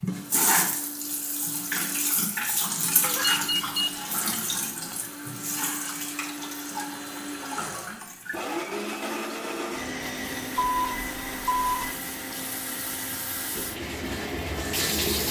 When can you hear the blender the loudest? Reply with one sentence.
The loudest moment of the blender is at 9 seconds.